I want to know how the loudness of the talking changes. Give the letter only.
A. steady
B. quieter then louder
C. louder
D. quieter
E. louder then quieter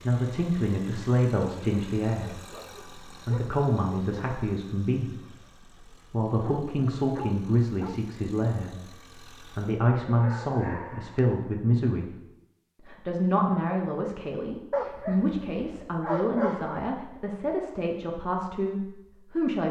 A.